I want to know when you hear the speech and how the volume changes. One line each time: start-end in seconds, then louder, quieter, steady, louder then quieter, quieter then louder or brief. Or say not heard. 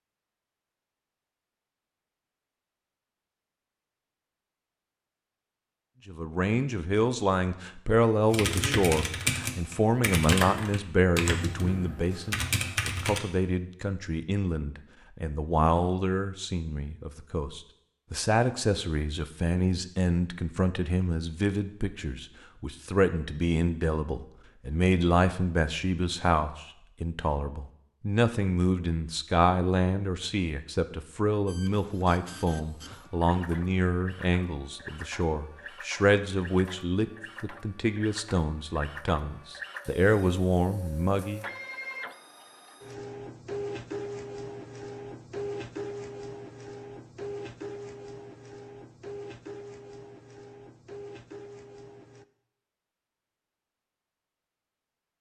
6.0-41.5 steady.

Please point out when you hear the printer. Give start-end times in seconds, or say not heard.
31.4-52.2.